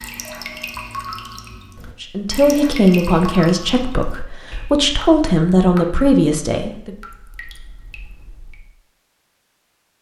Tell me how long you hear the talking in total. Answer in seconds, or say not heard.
5 s.